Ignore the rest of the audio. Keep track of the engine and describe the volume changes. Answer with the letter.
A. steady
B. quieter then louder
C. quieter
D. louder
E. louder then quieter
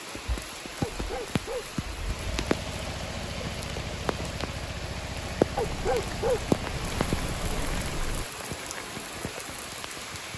A.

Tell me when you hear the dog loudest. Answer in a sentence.
The loudest moment of the dog is at 6 seconds.